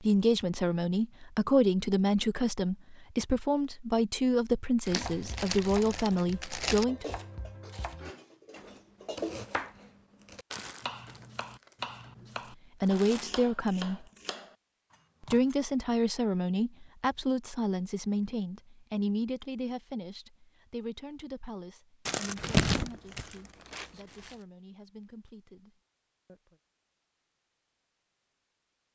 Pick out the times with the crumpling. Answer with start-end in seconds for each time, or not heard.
4.8-6.8, 10.5-13.3, 22.1-24.4.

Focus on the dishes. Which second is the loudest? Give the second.
9 s.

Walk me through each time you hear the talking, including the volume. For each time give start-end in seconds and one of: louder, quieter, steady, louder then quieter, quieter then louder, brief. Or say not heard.
0.0-7.1 steady
12.8-14.1 brief
15.2-26.6 quieter.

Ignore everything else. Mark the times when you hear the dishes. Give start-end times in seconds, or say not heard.
6.8-9.5.